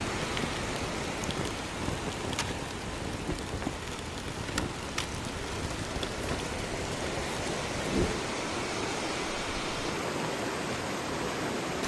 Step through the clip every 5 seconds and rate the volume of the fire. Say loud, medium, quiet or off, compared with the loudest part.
loud, loud, off.